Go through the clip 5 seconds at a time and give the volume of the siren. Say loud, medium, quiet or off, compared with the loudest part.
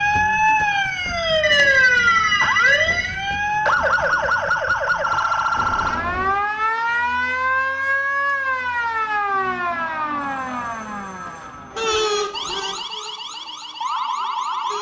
loud, loud, medium.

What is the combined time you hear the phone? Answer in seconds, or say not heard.
4 s.